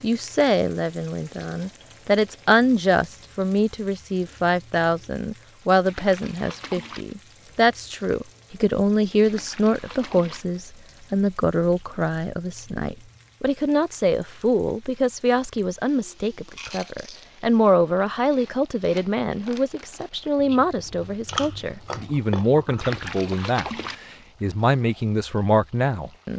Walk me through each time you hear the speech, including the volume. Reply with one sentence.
You can hear the speech from 0.0 to 26.3 s, at a steady volume.